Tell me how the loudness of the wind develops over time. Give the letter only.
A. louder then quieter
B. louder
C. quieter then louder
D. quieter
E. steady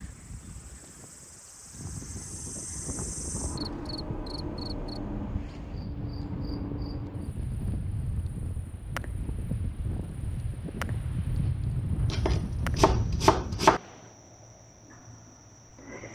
B.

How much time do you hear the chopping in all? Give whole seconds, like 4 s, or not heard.
2 s.